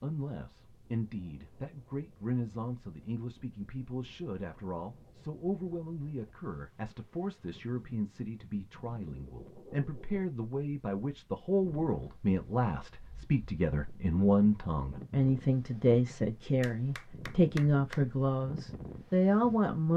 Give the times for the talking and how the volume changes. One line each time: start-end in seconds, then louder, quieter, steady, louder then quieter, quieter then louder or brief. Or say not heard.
0.0-19.9 louder.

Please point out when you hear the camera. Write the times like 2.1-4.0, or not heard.
not heard.